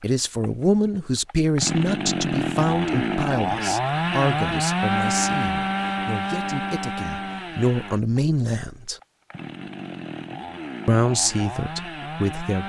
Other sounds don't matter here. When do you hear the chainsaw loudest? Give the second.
5 s.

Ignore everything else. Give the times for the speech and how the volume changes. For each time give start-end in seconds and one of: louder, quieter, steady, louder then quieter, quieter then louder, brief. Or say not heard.
0.0-8.9 quieter then louder
10.8-12.6 brief.